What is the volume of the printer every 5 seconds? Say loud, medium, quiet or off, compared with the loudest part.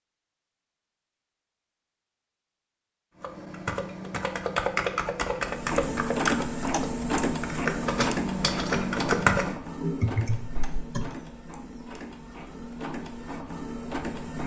off, loud, medium.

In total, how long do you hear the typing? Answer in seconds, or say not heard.
8 s.